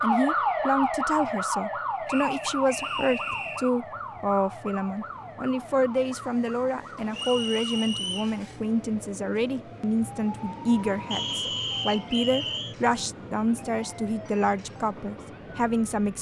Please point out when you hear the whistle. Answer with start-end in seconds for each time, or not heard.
2.0-3.7, 7.1-8.3, 11.1-12.8.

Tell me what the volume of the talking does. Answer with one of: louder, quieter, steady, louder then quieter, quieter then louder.
steady.